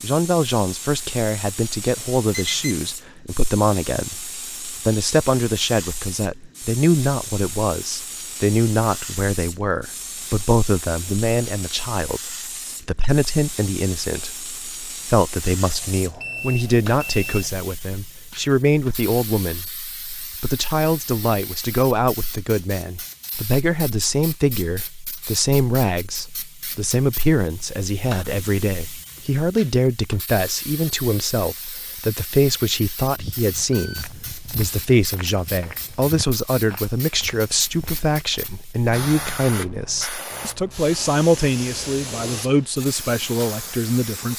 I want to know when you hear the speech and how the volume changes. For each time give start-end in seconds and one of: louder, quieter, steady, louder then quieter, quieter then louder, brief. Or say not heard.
0.0-44.3 steady.